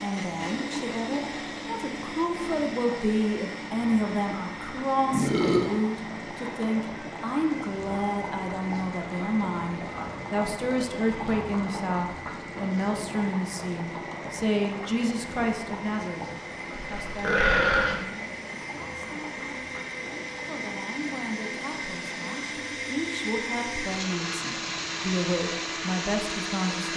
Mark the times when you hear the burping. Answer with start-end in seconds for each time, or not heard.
5.1-5.7, 16.9-18.0.